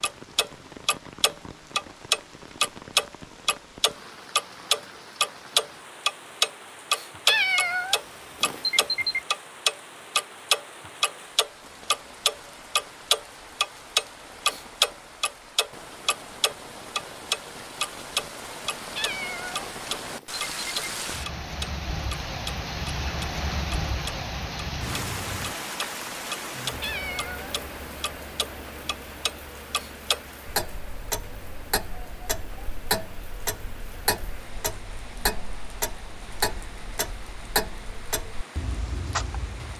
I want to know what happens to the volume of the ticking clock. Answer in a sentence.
The loudness of the ticking clock goes down.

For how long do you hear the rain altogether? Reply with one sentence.
The rain can be heard for 40 seconds in total.